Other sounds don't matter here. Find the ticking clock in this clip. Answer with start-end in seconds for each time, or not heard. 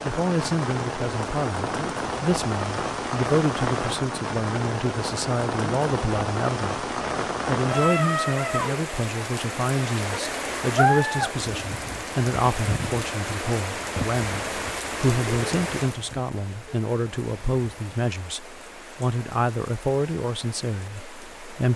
not heard.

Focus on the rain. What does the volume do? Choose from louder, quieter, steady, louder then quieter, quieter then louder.
quieter.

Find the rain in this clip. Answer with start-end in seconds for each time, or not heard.
0.0-21.7.